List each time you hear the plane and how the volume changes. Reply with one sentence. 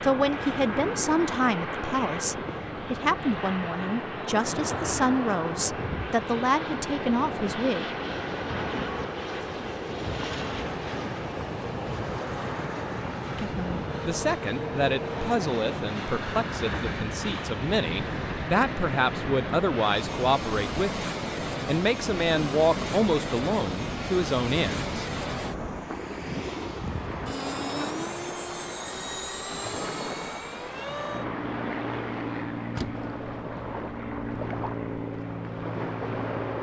The plane can be heard from 0.0 to 36.5 s, at a steady volume.